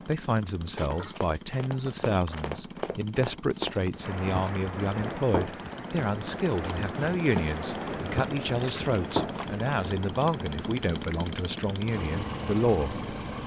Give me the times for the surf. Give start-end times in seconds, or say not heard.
4.0-13.3.